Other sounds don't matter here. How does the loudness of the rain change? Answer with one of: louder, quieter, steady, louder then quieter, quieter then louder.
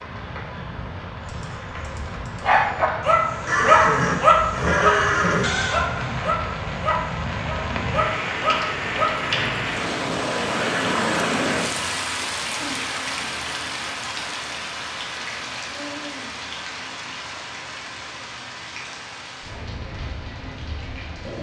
louder then quieter.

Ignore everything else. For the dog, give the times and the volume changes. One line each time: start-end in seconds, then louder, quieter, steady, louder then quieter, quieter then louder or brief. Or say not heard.
1.2-9.3 louder then quieter.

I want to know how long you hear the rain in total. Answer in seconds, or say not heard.
21 s.